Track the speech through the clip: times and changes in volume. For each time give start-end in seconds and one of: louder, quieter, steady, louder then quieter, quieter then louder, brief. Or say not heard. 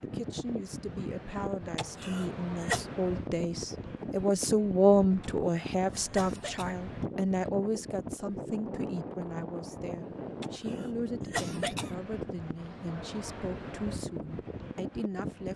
0.0-15.5 louder then quieter.